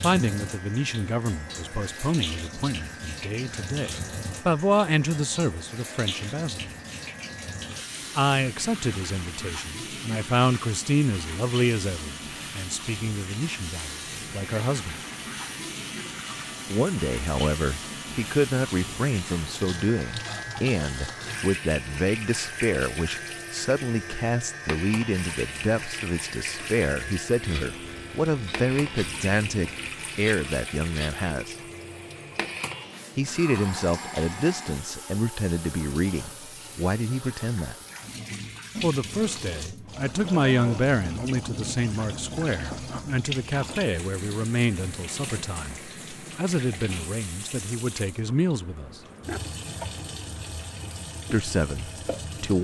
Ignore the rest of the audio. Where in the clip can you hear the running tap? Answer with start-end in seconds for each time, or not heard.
0.0-52.5.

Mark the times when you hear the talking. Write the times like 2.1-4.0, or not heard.
0.0-6.7, 8.2-15.0, 16.7-31.6, 33.1-37.8, 38.8-49.0, 51.3-52.5.